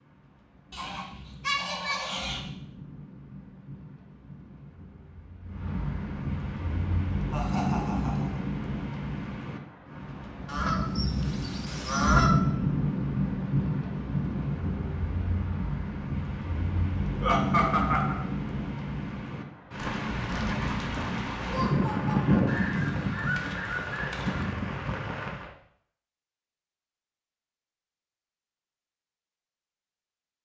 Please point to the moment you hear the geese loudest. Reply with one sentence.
The loudest moment of the geese is at 12 seconds.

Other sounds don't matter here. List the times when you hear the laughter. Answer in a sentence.
You can hear the laughter from 7.3 to 8.4 s, from 17.2 to 18.1 s and from 21.4 to 22.7 s.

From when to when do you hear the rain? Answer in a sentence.
The rain can be heard from 0.0 to 25.5 s.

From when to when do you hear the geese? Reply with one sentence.
The geese can be heard from 0.7 to 2.4 s, from 10.4 to 12.3 s and from 22.4 to 24.5 s.